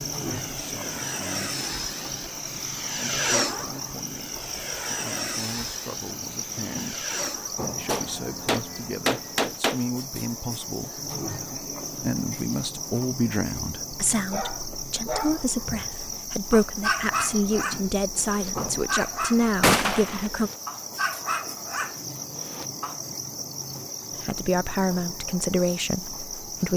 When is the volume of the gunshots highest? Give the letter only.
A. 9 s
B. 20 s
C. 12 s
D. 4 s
B.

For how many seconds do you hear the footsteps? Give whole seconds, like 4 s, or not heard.
not heard.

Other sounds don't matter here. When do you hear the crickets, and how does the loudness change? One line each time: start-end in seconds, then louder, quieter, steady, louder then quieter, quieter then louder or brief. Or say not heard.
0.0-26.7 steady.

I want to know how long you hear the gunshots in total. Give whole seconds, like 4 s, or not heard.
3 s.